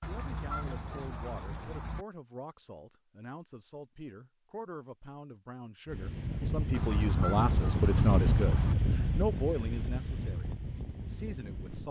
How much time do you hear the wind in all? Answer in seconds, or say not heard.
6 s.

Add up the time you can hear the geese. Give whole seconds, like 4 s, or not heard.
4 s.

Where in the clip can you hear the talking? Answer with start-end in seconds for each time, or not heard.
0.0-11.8.